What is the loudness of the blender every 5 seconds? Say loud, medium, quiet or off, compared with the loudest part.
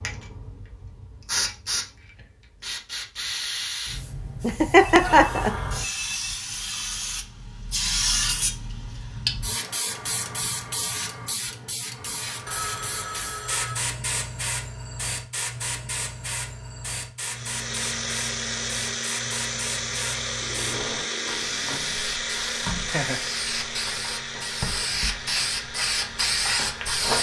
off, off, off, loud, loud, medium.